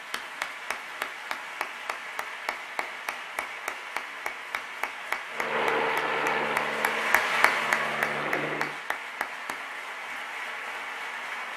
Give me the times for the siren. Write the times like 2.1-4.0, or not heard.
not heard.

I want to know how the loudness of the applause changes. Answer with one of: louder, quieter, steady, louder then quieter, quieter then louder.
louder then quieter.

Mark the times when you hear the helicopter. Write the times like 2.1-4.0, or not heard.
5.3-8.8.